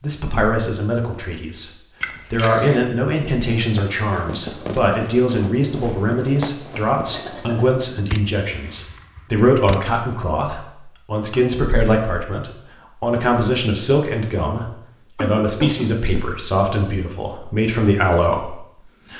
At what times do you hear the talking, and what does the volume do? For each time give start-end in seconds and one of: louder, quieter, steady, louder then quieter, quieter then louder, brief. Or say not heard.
0.0-19.1 steady.